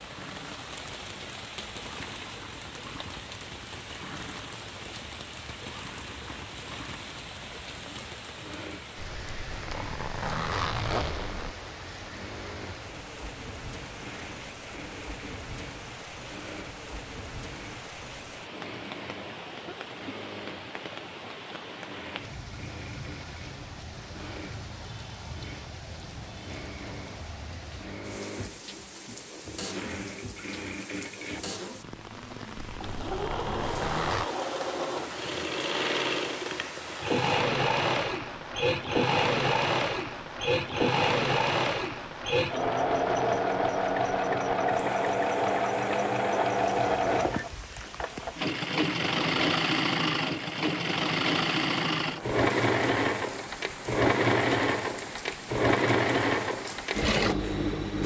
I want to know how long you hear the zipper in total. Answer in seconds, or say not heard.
4 s.